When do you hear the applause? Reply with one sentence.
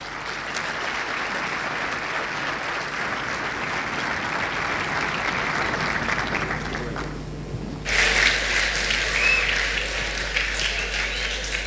You can hear the applause from 0.0 to 11.6 s.